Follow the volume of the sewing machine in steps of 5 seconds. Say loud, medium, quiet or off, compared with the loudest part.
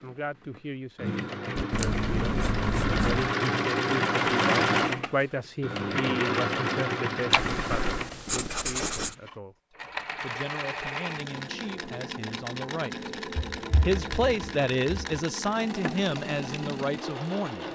loud, loud, medium, medium.